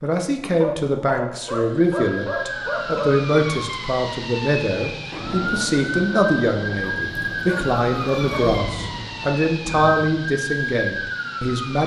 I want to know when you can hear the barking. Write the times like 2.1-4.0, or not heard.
0.5-3.2, 6.8-8.6.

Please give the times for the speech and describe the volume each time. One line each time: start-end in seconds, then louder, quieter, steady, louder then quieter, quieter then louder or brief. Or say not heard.
0.0-11.8 steady.